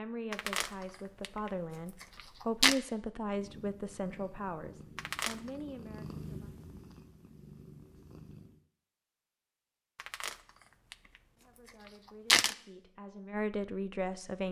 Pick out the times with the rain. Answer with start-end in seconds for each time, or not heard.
not heard.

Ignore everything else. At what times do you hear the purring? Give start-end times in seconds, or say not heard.
3.2-8.7.